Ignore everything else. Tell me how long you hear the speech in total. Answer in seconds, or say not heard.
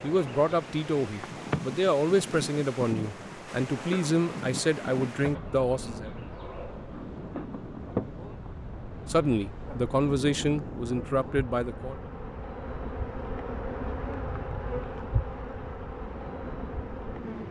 9 s.